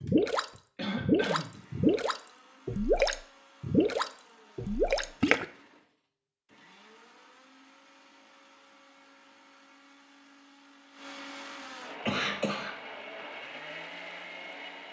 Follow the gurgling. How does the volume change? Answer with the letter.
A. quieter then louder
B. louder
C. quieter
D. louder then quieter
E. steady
E.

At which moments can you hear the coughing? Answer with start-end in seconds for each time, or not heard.
0.8-1.6, 12.1-12.8.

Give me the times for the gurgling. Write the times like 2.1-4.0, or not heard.
0.0-5.5.